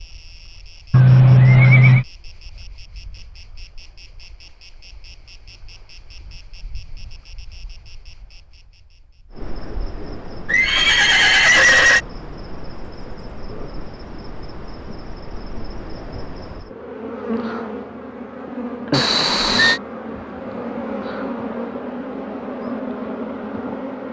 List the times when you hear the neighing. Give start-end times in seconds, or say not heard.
0.9-2.0, 10.4-12.0, 18.9-19.8.